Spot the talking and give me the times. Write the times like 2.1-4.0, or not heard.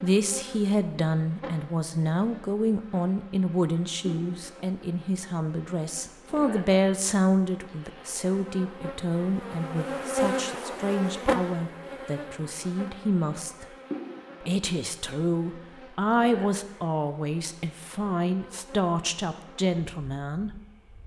0.0-13.7, 14.4-20.5.